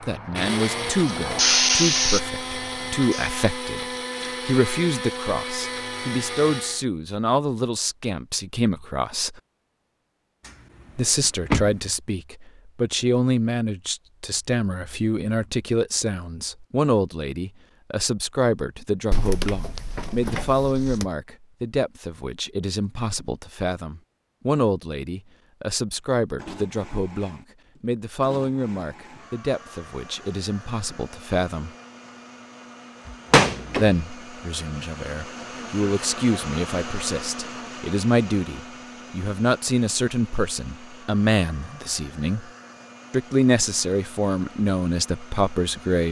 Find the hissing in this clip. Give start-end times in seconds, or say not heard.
0.0-3.3.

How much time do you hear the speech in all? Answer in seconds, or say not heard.
42 s.